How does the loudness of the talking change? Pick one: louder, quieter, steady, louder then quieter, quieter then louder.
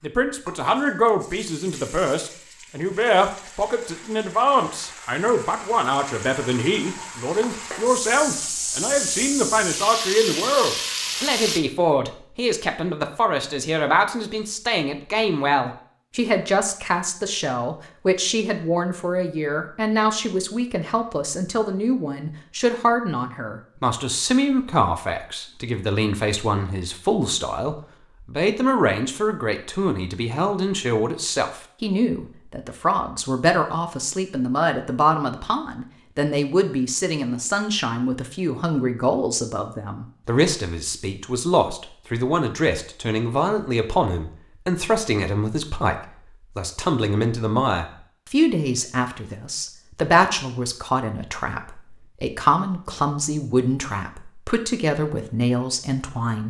steady.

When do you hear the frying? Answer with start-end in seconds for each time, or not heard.
0.0-11.6.